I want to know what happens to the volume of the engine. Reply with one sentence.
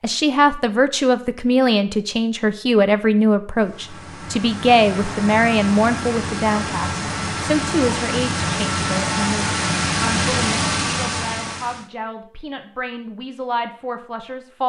The loudness of the engine goes up.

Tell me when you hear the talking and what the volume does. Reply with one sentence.
You can hear the talking from 0.0 to 14.6 s, getting quieter.